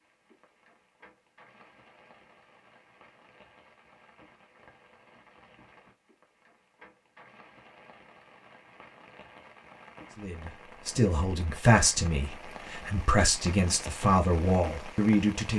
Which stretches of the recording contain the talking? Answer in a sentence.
The talking can be heard from 10.2 to 15.5 s.